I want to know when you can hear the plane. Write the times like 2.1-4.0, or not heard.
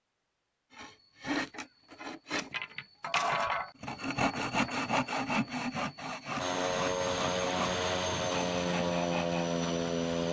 6.3-10.2.